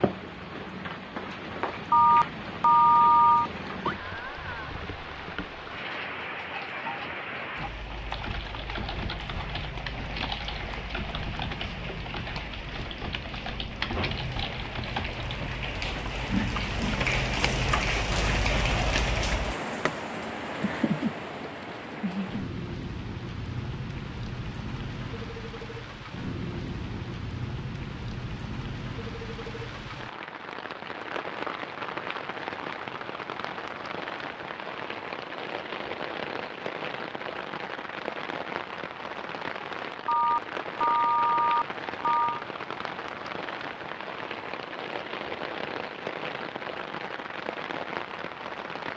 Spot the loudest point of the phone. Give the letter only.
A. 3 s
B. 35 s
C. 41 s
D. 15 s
A.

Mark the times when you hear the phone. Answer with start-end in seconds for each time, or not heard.
1.9-3.5, 40.0-42.4.